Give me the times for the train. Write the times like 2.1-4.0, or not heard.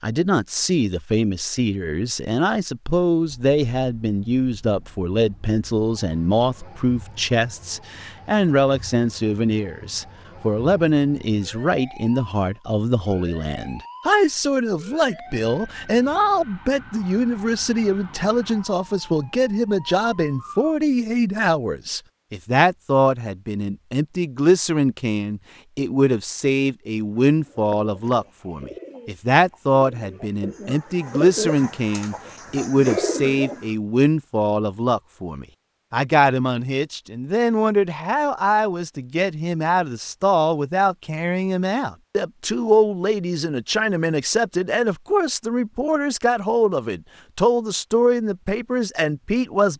not heard.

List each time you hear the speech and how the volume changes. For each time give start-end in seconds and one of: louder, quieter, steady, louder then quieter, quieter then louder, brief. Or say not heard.
0.0-49.7 steady.